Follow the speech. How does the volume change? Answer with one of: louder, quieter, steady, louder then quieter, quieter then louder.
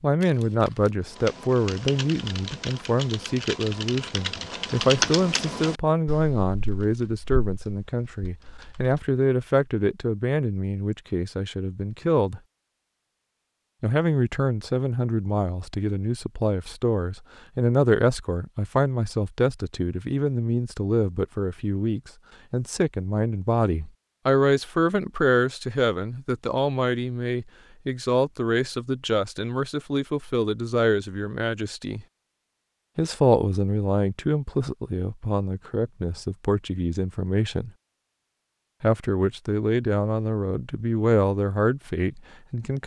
steady.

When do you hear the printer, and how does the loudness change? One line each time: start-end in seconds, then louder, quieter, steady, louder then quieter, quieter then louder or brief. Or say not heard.
not heard.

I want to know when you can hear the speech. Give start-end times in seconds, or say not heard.
0.0-12.4, 13.8-32.0, 33.0-37.7, 38.8-42.8.